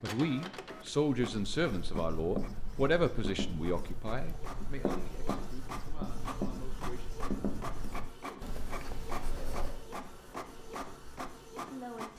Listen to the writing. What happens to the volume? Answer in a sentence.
The loudness of the writing goes down.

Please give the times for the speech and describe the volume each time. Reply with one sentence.
The speech can be heard from 0.0 to 7.2 s, getting quieter; and briefly from 11.7 to 12.1 s.